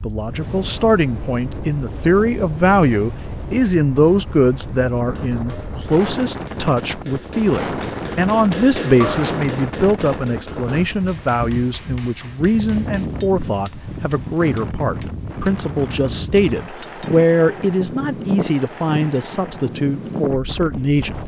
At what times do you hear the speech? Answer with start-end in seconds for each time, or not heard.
0.0-21.2.